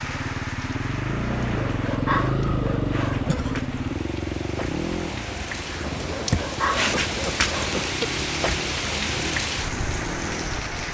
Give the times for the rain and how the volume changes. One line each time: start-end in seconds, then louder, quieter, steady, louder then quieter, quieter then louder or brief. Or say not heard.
0.0-10.8 louder.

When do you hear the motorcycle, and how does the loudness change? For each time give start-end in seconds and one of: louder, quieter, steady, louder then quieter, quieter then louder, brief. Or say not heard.
0.0-10.6 quieter.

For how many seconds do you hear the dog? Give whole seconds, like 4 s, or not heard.
4 s.